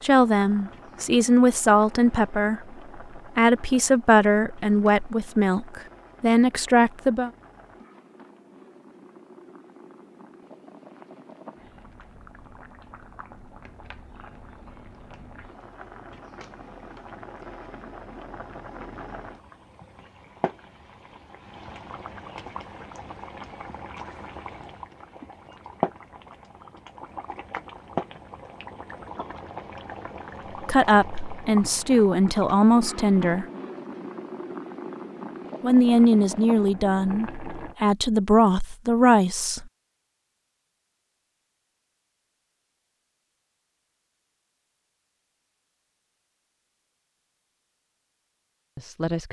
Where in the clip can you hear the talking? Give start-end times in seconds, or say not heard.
0.0-7.3, 30.6-33.5, 35.6-39.6, 48.8-49.2.